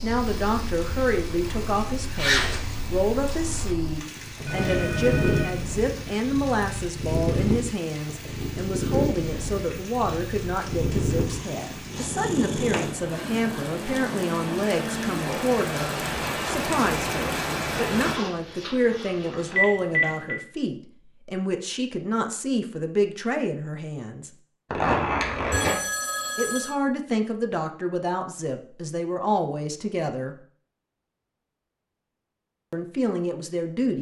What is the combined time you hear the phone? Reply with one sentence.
You can hear the phone for 3 seconds altogether.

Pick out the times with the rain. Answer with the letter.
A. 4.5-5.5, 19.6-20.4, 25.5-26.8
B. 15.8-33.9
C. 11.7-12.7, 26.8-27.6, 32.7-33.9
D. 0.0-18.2
D.